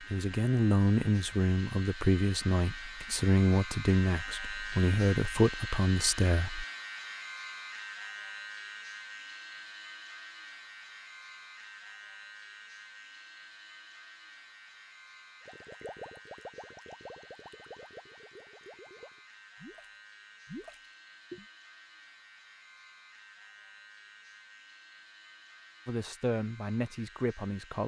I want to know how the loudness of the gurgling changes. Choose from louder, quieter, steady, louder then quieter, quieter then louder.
quieter then louder.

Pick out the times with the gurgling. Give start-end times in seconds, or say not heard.
15.4-21.4.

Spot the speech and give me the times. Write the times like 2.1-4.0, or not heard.
0.1-6.7, 25.9-27.8.